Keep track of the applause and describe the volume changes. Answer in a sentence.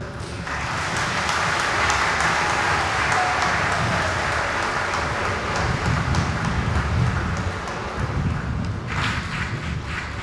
The volume of the applause goes down.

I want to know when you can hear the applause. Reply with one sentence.
The applause can be heard from 0.0 to 10.1 s.